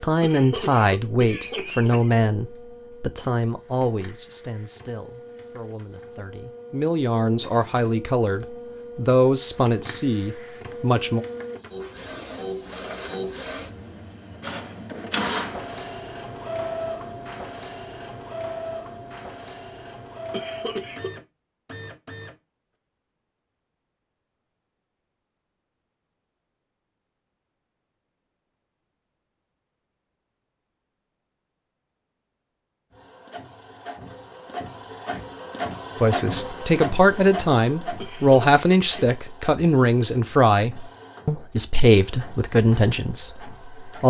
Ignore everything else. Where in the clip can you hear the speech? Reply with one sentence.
You can hear the speech from 0.0 to 11.2 s and from 36.0 to 44.0 s.